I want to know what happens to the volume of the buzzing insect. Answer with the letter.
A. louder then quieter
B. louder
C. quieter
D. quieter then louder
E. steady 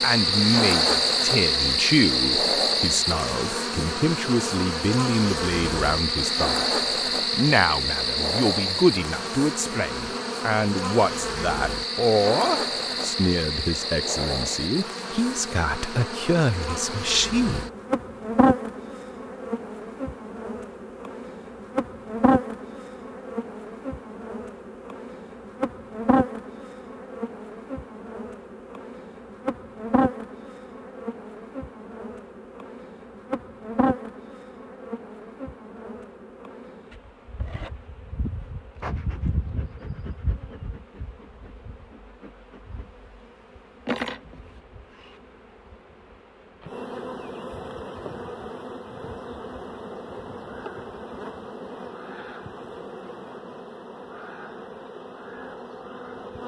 C.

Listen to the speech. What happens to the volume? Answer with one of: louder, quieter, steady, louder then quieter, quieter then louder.
steady.